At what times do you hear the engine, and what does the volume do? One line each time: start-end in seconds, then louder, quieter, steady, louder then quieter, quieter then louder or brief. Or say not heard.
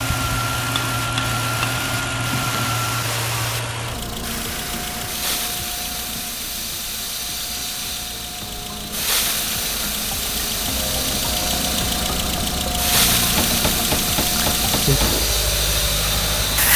0.0-16.7 quieter then louder.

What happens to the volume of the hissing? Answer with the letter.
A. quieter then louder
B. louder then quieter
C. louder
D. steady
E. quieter
C.